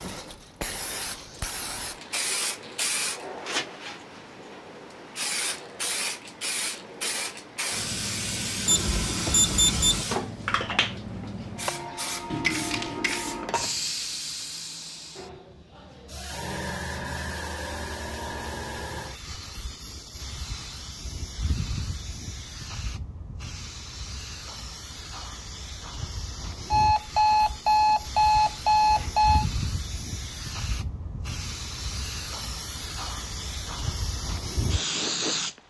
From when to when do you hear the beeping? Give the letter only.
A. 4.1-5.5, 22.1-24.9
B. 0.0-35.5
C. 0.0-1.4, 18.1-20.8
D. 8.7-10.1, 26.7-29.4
D.